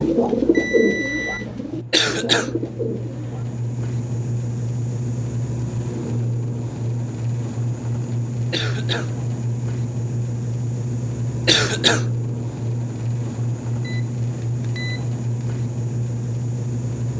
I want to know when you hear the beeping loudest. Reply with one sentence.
The volume of the beeping peaks at 1 second.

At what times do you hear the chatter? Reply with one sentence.
You can't hear the chatter here.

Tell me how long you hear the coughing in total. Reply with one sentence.
The coughing can be heard for 2 seconds in total.